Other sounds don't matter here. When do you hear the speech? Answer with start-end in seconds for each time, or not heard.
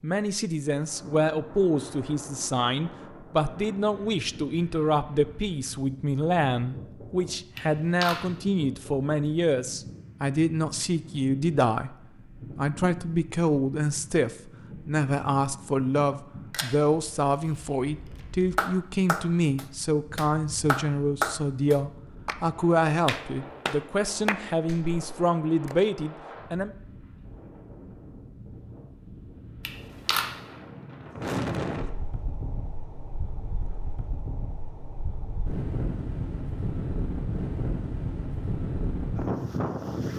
0.0-26.7.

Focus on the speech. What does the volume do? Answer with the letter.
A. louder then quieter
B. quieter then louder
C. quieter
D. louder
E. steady
E.